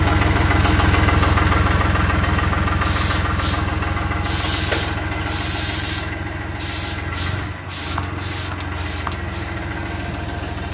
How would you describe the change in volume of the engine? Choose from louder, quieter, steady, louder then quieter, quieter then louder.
quieter.